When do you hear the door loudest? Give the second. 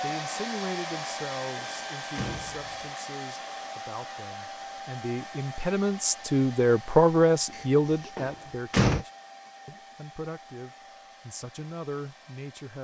9 s.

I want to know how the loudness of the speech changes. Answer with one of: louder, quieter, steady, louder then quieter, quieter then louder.
louder then quieter.